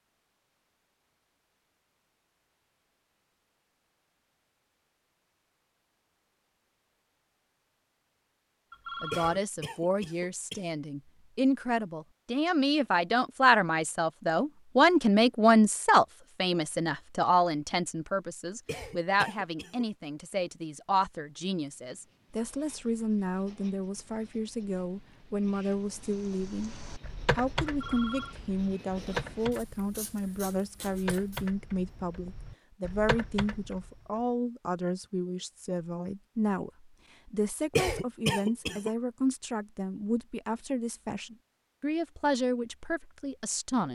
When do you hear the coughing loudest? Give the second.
38 s.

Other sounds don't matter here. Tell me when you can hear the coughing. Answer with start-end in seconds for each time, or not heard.
9.1-10.7, 18.6-19.9, 37.8-38.9.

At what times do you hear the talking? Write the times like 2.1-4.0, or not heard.
9.0-26.8, 27.4-43.9.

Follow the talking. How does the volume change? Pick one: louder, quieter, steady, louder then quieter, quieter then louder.
quieter.